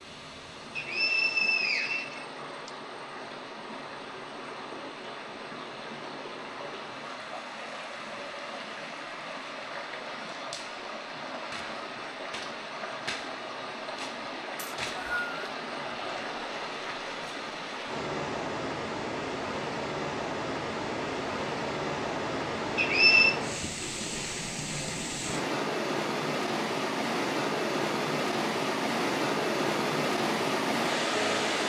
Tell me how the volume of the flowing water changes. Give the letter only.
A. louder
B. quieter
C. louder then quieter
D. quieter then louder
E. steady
A.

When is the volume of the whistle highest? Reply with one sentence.
The loudest moment of the whistle is at 23 seconds.